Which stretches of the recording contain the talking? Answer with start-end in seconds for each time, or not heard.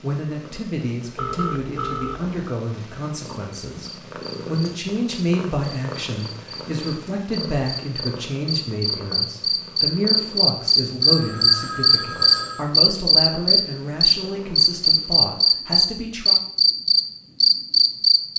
0.0-16.4.